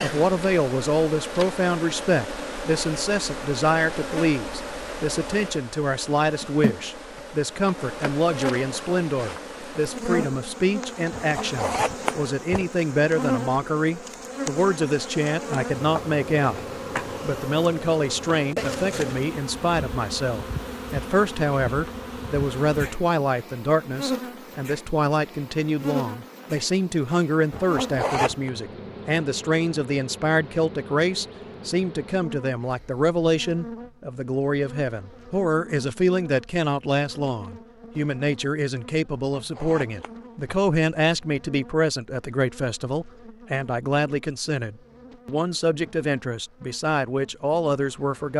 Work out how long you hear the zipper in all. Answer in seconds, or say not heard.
4 s.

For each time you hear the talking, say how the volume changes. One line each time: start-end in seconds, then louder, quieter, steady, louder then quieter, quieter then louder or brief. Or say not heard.
0.0-16.6 steady
17.2-48.3 steady.